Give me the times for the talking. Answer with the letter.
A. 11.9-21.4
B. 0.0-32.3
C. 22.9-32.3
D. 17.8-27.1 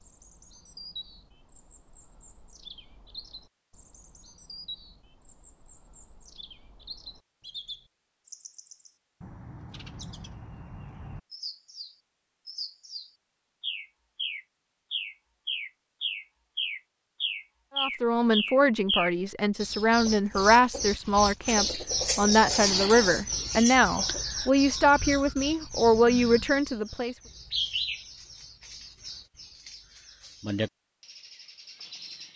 D.